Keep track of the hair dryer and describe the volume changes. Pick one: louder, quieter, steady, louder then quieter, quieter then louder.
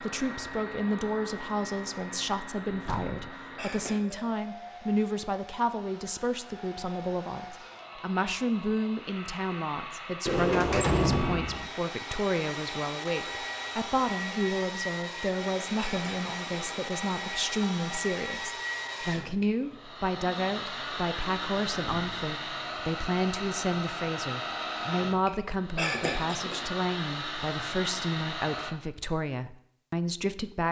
louder.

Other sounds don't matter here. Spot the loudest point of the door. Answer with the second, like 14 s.
11 s.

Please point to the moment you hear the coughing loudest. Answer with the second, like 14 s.
26 s.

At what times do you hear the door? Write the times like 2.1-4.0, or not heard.
2.6-3.3, 10.2-11.7, 21.8-22.2.